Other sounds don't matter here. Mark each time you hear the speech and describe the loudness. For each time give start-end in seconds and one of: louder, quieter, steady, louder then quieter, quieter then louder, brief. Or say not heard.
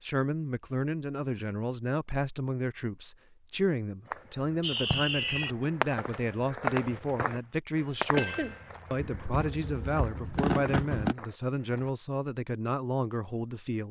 0.0-13.8 steady.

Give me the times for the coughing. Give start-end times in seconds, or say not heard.
8.1-8.6.